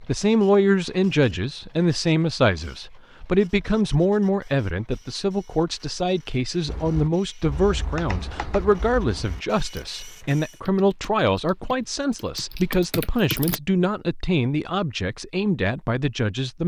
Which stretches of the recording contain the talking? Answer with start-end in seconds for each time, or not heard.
0.0-16.6.